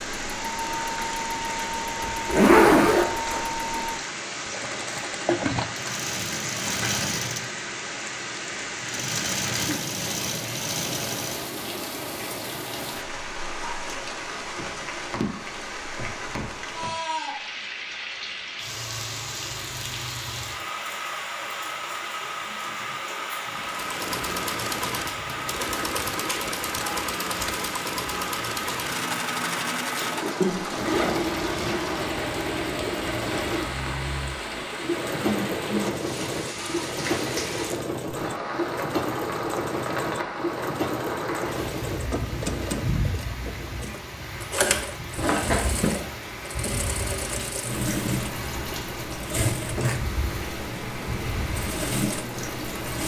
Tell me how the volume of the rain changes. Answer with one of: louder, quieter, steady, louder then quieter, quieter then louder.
steady.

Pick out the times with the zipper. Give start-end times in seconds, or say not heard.
2.0-3.5, 30.0-31.8, 45.1-46.0.